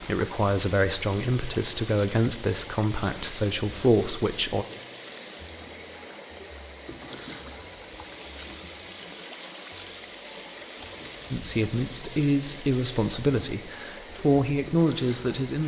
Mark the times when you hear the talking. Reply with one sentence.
The talking can be heard from 0.0 to 4.7 s and from 11.3 to 15.6 s.